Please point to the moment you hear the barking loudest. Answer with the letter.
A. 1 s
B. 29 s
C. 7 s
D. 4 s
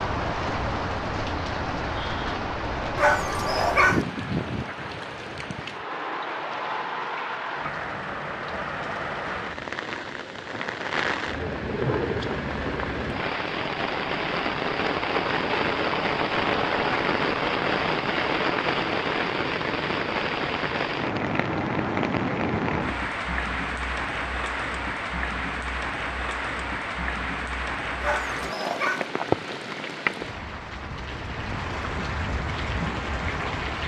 D.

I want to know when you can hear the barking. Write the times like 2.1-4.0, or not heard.
3.0-4.0, 28.0-29.1.